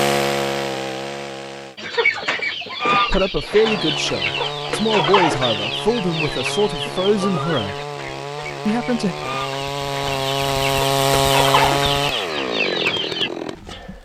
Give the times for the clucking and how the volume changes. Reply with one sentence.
The clucking can be heard from 1.8 to 13.3 s, getting quieter then louder.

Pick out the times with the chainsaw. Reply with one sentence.
The chainsaw can be heard from 0.0 to 1.8 s and from 3.6 to 14.0 s.